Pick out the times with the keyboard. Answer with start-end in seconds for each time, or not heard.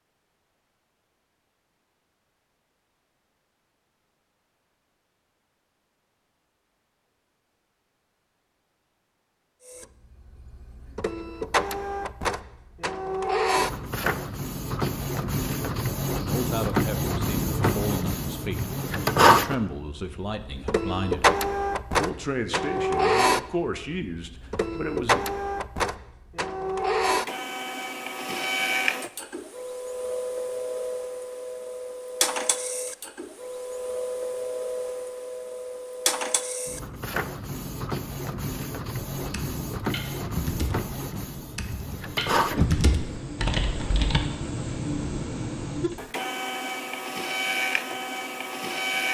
39.2-44.2.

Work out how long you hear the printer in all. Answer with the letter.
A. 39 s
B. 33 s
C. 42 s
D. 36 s
A.